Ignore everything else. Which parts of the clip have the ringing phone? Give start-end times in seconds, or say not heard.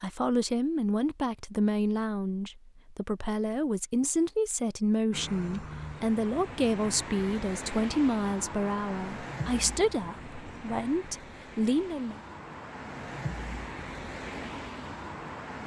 not heard.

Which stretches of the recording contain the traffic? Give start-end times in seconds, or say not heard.
5.1-15.6.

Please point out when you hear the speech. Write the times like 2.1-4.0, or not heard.
0.0-12.2.